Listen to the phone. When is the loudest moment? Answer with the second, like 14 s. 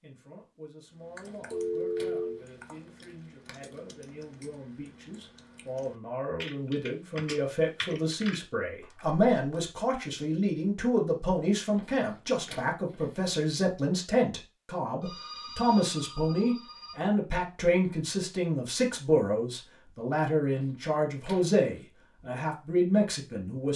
2 s.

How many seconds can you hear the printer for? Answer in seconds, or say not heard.
not heard.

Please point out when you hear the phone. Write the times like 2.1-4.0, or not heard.
1.5-2.4, 15.0-17.0.